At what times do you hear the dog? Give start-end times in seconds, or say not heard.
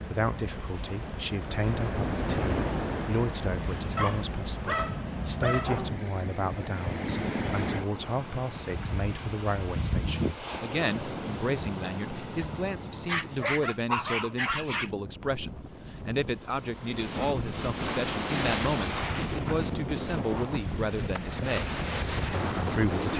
4.0-6.0, 13.1-14.9.